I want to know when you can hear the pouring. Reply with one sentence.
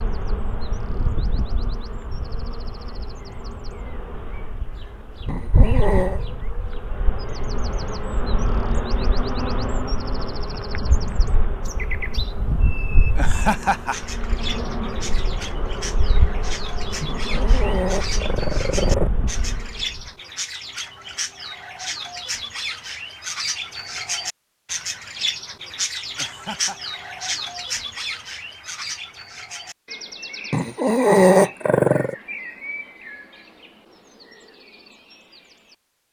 The pouring can't be heard in this clip.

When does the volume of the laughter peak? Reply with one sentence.
The loudest moment of the laughter is at 14 seconds.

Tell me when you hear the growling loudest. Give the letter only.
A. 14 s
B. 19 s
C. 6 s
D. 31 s
D.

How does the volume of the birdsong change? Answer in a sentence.
The volume of the birdsong goes up, then down.